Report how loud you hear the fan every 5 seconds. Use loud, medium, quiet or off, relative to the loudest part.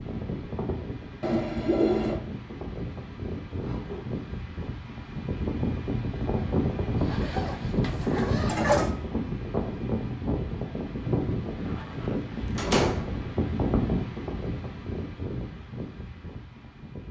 medium, loud, loud, medium.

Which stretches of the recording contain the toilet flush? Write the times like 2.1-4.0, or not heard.
1.2-2.2, 7.8-9.0, 12.6-13.2.